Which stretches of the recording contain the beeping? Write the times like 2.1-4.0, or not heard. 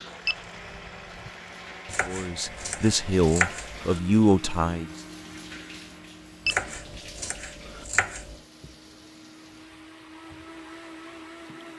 0.2-1.3, 6.5-7.0.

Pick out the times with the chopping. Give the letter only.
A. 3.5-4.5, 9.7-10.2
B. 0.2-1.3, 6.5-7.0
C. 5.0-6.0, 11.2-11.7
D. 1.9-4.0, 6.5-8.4
D.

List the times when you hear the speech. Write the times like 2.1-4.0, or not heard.
2.0-4.9.